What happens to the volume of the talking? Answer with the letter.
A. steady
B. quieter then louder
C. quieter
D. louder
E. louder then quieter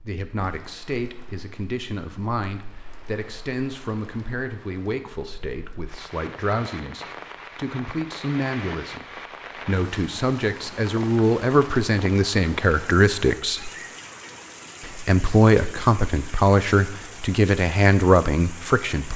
D.